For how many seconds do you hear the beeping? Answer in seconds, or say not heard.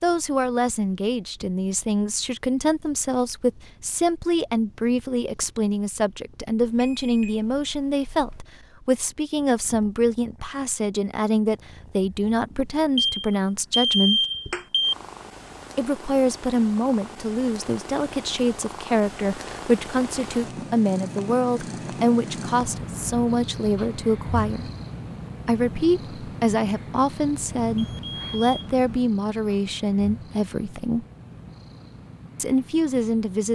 5 s.